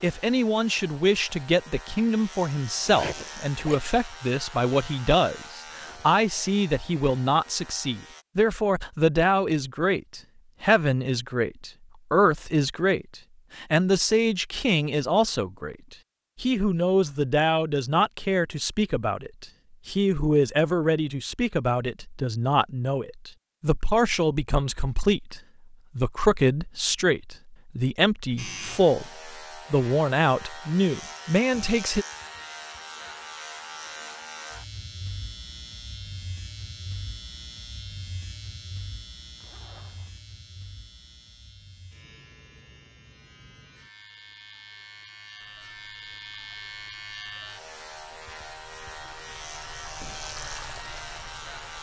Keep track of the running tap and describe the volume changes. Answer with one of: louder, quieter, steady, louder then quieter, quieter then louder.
louder.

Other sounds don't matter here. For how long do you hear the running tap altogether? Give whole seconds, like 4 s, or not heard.
6 s.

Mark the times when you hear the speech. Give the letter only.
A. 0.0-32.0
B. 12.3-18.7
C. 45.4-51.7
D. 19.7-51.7
A.